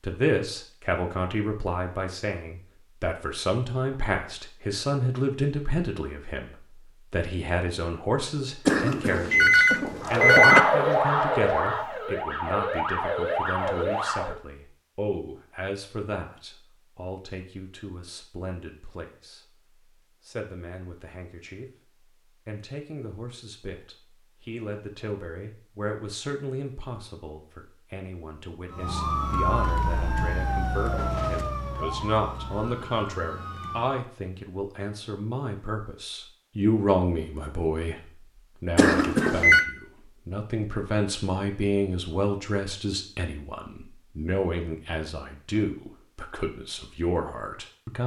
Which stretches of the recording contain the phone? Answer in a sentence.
The phone can be heard from 8.7 to 10.6 s and from 38.8 to 39.6 s.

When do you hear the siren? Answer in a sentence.
You can hear the siren from 10.0 to 14.4 s and from 28.7 to 34.0 s.